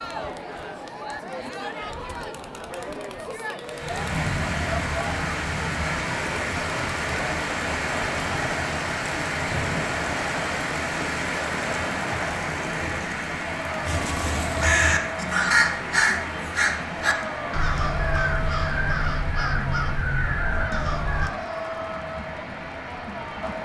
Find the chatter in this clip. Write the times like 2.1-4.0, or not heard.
0.0-23.6.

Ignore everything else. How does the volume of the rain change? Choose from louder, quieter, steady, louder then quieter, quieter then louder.
quieter.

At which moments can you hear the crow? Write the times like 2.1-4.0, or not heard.
13.8-21.3.